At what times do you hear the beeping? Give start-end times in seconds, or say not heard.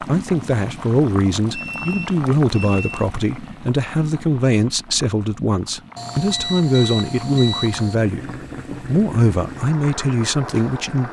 1.5-2.9, 6.0-8.0.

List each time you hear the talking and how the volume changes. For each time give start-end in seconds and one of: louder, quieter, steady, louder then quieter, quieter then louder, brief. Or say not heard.
0.0-11.0 steady.